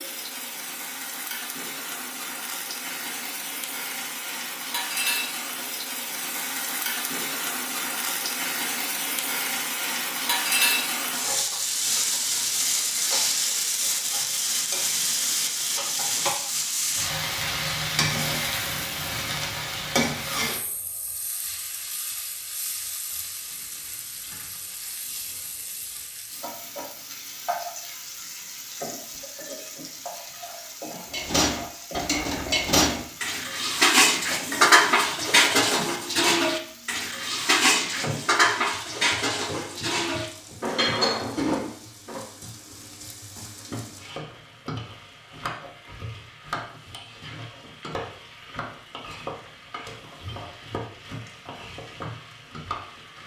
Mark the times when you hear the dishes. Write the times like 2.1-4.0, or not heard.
31.1-42.1.